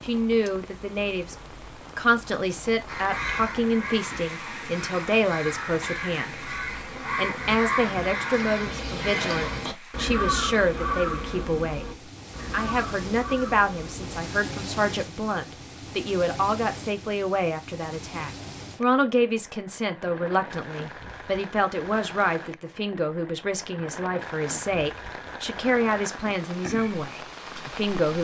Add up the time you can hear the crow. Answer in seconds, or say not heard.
11 s.